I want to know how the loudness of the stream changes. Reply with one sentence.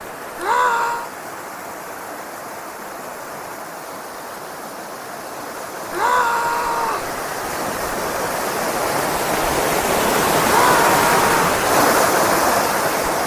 The loudness of the stream goes up.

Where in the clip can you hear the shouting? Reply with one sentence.
The shouting can be heard from 0.3 to 1.1 s, from 5.9 to 7.1 s and from 10.4 to 11.3 s.